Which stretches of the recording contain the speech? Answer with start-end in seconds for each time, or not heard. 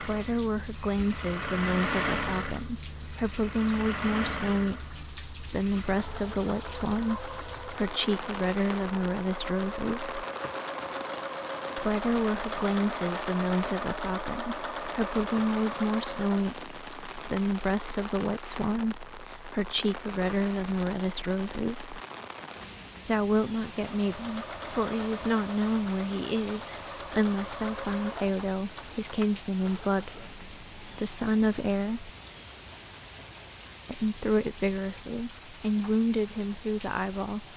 0.0-10.2, 11.8-21.9, 23.1-32.1, 33.9-37.5.